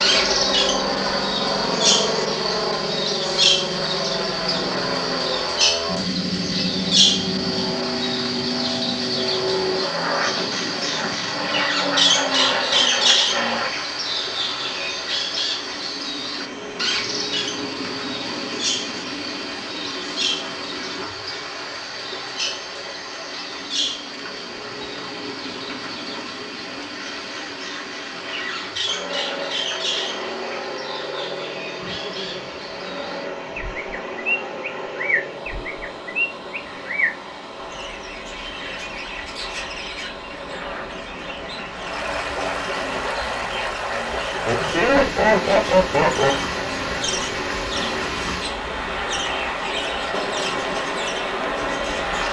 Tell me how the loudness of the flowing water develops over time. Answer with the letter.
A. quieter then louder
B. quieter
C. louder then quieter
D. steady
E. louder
E.